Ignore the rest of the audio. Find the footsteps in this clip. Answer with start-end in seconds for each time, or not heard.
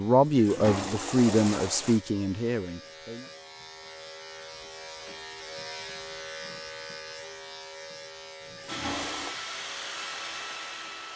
not heard.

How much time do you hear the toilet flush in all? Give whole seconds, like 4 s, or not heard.
3 s.